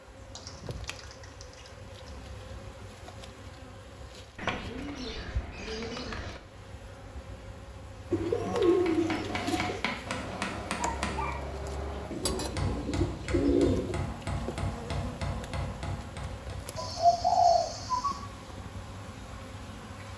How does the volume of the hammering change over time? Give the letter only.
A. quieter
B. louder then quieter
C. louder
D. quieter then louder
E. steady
E.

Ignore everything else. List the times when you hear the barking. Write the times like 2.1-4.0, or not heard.
10.8-12.0.